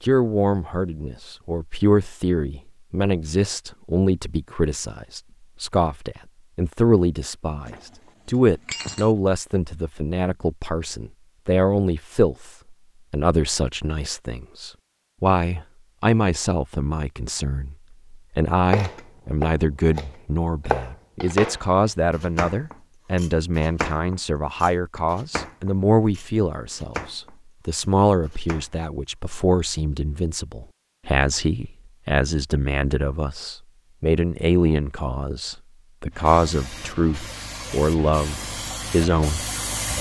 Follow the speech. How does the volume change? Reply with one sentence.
The volume of the speech stays about the same.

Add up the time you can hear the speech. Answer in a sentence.
The speech can be heard for 40 seconds in total.